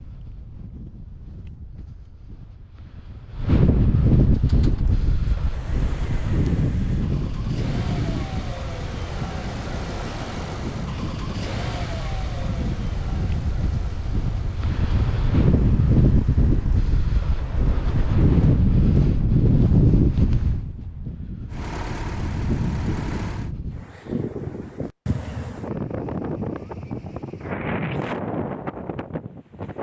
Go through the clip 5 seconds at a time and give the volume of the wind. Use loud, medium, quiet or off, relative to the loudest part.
medium, medium, medium, loud, medium, medium.